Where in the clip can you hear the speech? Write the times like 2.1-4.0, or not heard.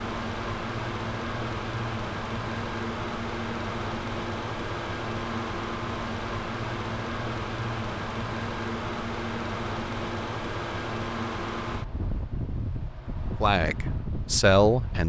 13.4-15.0.